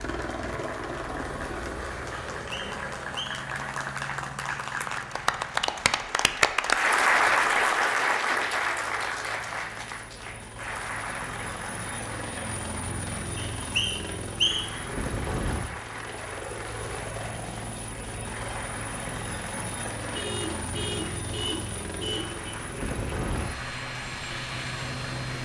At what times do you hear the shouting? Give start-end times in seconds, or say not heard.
not heard.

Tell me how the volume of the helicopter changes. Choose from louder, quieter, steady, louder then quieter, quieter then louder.
quieter then louder.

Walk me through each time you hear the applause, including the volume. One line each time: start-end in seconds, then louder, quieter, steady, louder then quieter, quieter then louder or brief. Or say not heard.
0.0-25.3 louder then quieter.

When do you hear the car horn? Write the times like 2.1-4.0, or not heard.
20.1-22.4.